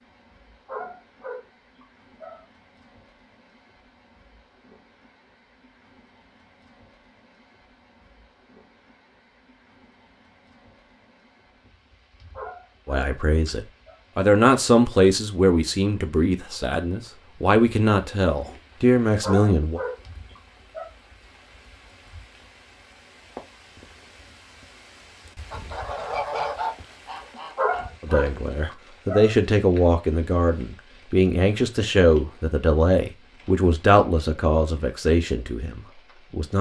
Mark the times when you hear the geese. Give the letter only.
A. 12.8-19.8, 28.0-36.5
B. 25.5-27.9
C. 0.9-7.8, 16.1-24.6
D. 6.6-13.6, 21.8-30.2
B.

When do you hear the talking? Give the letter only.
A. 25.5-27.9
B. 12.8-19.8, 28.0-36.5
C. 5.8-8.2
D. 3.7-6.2
B.